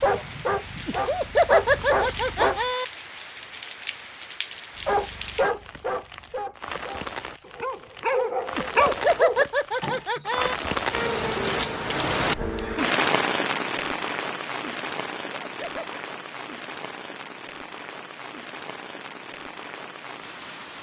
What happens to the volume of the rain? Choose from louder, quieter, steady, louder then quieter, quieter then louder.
louder then quieter.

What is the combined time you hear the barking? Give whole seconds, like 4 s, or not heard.
8 s.